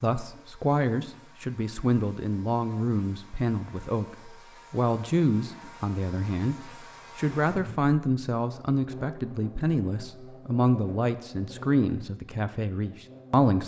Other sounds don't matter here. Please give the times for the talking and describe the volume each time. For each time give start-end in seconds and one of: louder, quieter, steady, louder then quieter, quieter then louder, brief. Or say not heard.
0.0-13.6 steady.